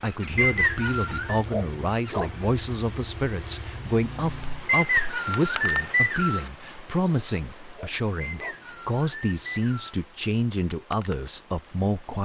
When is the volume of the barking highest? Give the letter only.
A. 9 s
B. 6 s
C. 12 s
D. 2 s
D.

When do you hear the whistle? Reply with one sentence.
The whistle can be heard from 0.3 to 1.4 s, from 4.7 to 6.5 s and from 8.2 to 10.0 s.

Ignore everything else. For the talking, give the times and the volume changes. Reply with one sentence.
You can hear the talking from 0.0 to 12.1 s, at a steady volume.